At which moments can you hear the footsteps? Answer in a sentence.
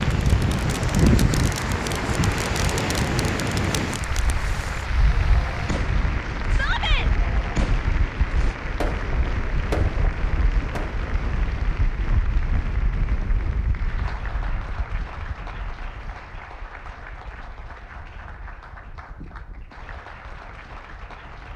The footsteps can't be heard in this clip.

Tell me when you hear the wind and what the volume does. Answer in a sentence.
The wind can be heard from 0.0 to 21.5 s, getting quieter.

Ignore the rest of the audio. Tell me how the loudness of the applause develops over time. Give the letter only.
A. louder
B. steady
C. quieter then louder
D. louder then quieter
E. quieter
E.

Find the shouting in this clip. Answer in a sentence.
The shouting can be heard from 6.5 to 7.1 s.